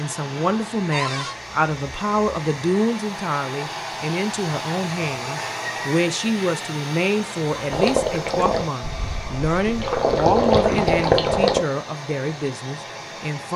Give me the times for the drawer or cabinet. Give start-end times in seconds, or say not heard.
0.9-1.4.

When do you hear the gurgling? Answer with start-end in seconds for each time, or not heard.
7.7-11.6.